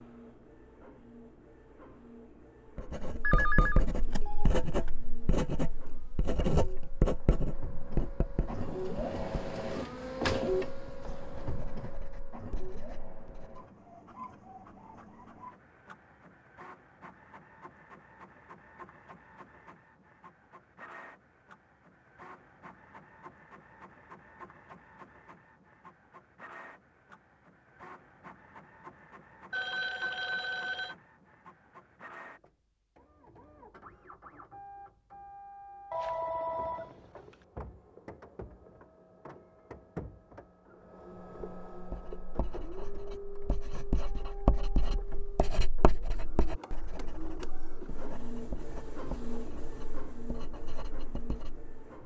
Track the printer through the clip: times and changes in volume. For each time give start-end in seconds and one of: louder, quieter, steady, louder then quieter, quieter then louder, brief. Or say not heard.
0.0-52.0 quieter then louder.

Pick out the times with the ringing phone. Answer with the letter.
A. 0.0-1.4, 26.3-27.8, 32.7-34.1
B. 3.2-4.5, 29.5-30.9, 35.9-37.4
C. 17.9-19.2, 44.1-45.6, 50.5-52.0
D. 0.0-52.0
B.